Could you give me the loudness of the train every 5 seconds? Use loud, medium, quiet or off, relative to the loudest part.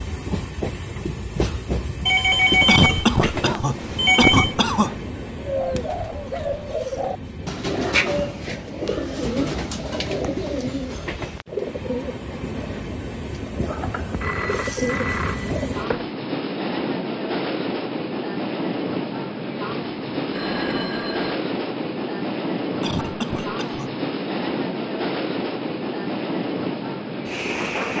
loud, medium, medium, loud, loud, loud.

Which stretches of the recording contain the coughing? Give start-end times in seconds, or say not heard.
2.6-5.0, 22.8-23.9.